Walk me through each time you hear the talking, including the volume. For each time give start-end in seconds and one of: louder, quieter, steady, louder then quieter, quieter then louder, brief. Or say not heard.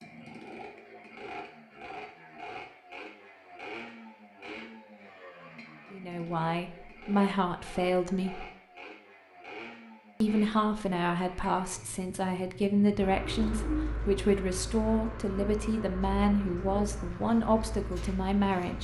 5.9-8.4 brief
10.2-18.8 steady.